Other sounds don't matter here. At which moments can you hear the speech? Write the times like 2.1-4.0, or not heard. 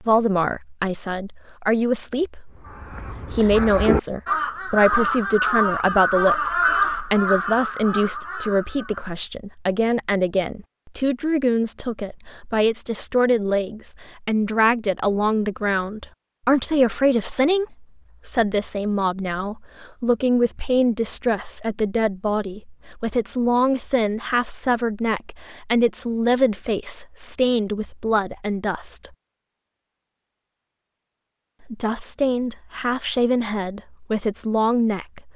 0.0-2.5, 3.3-29.1, 31.6-35.3.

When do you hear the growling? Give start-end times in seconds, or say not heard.
not heard.